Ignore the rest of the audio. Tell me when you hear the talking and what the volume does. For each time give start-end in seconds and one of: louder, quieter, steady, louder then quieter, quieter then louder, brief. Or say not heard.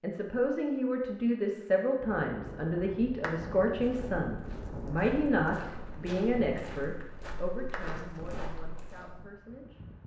0.0-9.8 quieter.